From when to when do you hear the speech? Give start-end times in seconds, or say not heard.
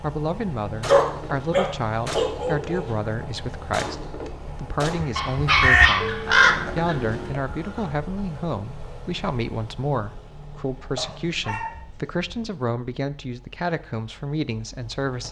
0.0-15.2.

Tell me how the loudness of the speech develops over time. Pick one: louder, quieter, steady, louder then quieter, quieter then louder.
steady.